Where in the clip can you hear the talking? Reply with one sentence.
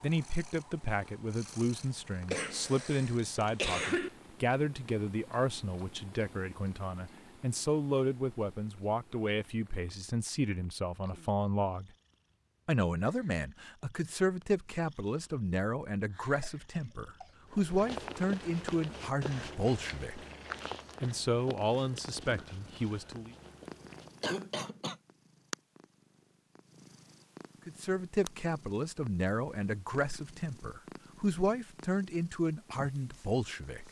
The talking can be heard from 0.0 to 11.9 s, from 12.7 to 20.2 s, from 21.0 to 23.4 s and from 27.6 to 33.8 s.